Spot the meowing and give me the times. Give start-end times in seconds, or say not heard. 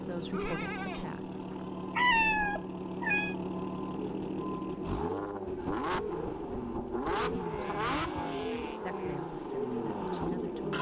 1.9-3.4, 5.5-7.3.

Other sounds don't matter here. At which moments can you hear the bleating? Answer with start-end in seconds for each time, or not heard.
0.3-1.9, 7.4-9.2.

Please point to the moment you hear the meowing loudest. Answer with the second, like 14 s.
2 s.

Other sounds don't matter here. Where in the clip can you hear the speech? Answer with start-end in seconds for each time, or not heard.
0.0-1.5, 7.2-10.7.